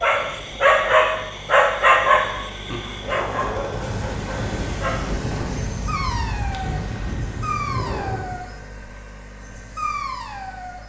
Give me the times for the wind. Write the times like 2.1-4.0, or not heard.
0.0-8.4.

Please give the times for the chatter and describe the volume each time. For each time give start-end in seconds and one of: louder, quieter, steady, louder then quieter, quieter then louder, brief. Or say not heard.
not heard.